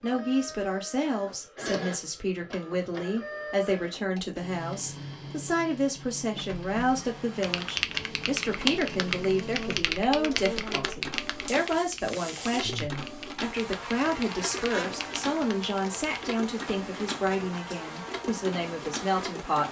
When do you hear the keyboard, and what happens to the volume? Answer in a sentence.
The keyboard can be heard from 7.4 to 16.2 s, getting quieter.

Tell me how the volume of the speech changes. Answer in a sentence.
The volume of the speech stays about the same.